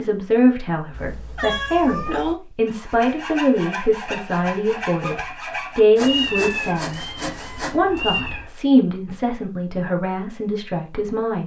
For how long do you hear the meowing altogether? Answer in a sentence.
The meowing can be heard for 4 seconds in total.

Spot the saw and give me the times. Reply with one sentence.
You can hear the saw from 2.6 to 8.3 s.